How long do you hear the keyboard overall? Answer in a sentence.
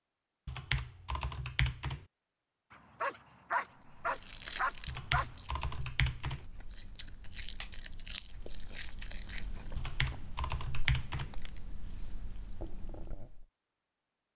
You can hear the keyboard for 5 seconds altogether.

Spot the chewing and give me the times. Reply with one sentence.
You can hear the chewing from 3.8 to 13.4 s.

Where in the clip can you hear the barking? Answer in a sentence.
You can hear the barking from 2.7 to 5.3 s.